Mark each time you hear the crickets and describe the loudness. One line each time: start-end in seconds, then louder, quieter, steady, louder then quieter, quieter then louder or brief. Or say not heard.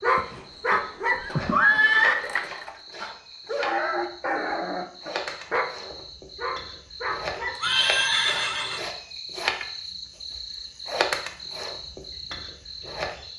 0.0-13.3 louder.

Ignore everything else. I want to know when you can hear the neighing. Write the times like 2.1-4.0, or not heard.
0.1-2.1, 7.6-8.8.